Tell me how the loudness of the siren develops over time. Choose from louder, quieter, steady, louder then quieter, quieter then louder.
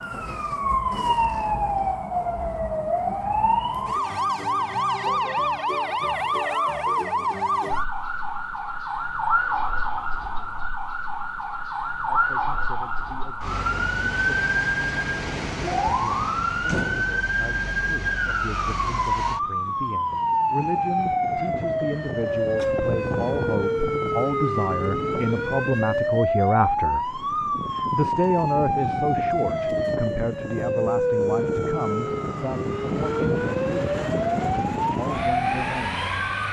steady.